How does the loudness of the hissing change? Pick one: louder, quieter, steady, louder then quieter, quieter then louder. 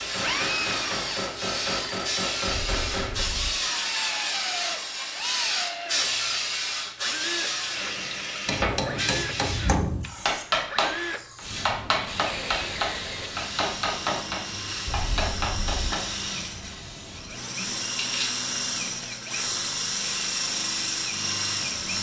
quieter.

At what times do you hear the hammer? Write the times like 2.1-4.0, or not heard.
0.0-3.2, 8.4-16.1.